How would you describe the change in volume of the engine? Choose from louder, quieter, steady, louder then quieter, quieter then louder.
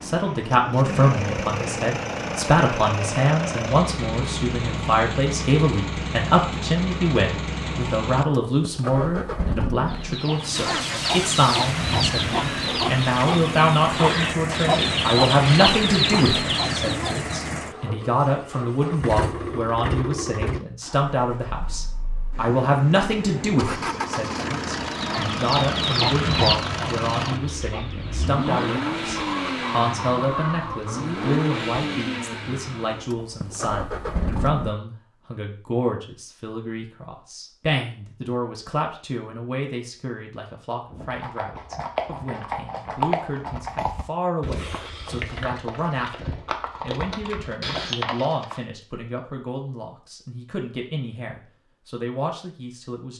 steady.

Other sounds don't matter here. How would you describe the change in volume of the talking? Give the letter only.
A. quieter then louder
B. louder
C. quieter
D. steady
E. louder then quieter
C.